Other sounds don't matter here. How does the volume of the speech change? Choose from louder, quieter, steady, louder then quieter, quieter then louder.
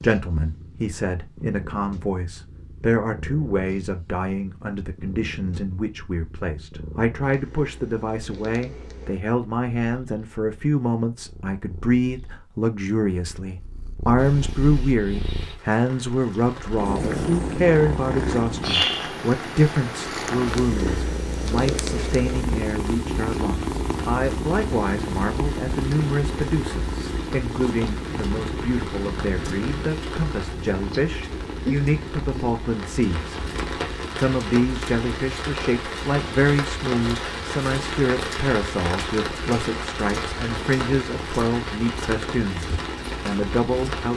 steady.